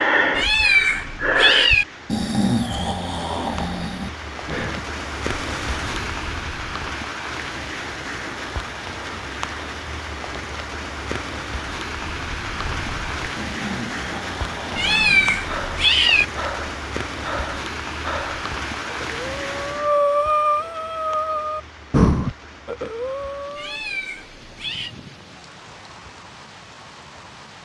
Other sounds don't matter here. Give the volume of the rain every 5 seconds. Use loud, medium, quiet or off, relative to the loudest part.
medium, loud, loud, loud, quiet, quiet.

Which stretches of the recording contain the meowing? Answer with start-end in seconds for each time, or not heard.
0.3-1.9, 14.8-16.2, 23.6-24.9.